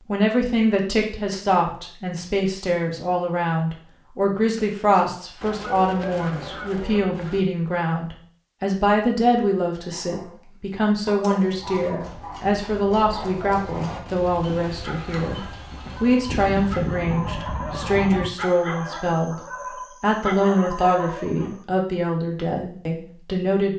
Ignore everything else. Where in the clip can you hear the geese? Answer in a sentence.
You can hear the geese from 5.4 to 7.4 s and from 16.2 to 18.3 s.